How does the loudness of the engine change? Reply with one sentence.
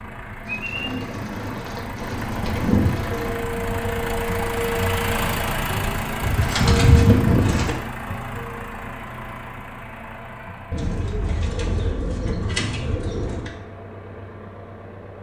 The volume of the engine goes up, then down.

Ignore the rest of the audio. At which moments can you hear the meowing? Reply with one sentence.
The meowing can't be heard in this clip.